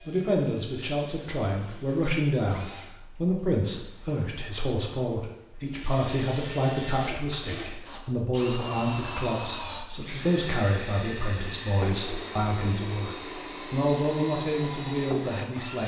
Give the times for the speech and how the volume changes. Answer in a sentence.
The speech can be heard from 0.1 to 15.8 s, at a steady volume.